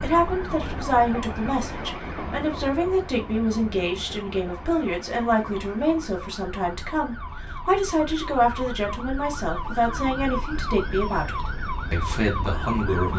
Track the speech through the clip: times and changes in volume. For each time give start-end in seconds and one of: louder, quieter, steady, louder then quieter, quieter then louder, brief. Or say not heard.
0.0-13.1 steady.